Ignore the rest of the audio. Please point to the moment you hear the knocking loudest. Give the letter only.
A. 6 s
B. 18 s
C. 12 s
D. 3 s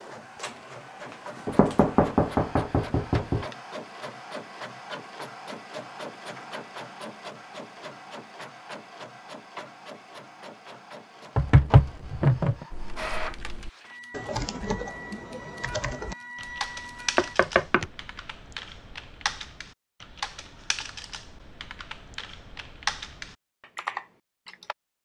C.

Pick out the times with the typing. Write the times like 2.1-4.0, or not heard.
12.7-24.8.